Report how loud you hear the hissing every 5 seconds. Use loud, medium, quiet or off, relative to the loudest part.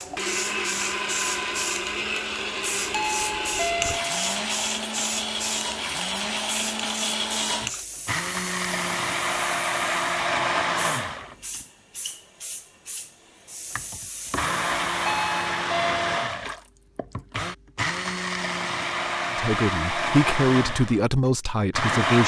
loud, loud, medium, off, off.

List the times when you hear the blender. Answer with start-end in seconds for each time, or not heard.
0.0-11.6, 13.8-22.2.